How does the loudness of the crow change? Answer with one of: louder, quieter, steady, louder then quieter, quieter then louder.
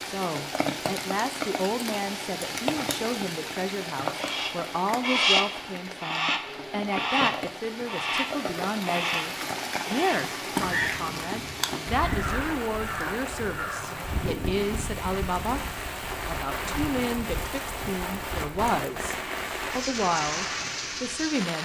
quieter.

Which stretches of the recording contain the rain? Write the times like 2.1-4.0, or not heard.
0.0-21.5.